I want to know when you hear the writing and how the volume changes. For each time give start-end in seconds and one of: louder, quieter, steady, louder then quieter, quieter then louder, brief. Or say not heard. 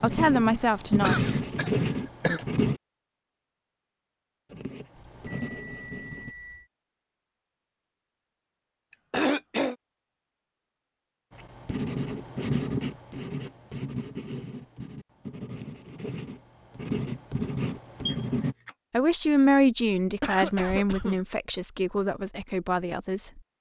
0.0-2.8 brief
4.5-6.3 brief
11.3-18.6 quieter then louder.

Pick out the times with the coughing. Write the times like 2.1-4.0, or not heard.
0.5-2.5, 9.1-9.8, 20.2-21.2.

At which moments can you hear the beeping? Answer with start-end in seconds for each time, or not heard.
5.0-6.7, 18.1-18.8.